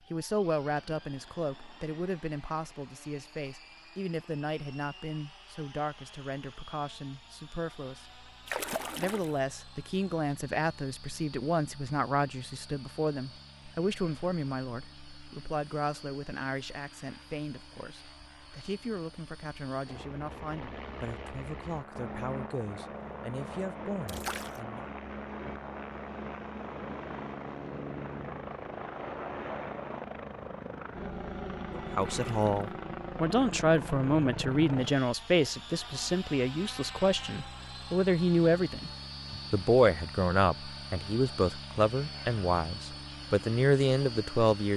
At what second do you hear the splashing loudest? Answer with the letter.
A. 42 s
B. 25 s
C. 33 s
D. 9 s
D.